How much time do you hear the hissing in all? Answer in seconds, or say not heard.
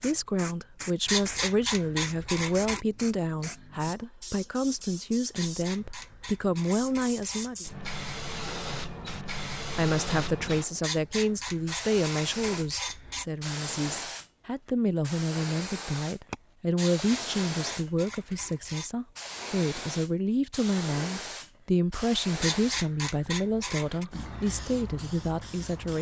26 s.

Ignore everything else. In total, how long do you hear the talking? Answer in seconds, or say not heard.
24 s.